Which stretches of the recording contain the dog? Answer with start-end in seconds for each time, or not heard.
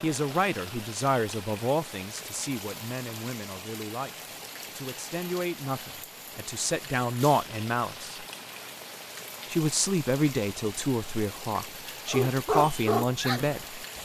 12.1-14.0.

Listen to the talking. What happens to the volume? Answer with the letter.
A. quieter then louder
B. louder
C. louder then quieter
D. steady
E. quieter
A.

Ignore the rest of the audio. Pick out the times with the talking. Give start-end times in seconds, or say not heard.
0.0-8.2, 9.4-13.8.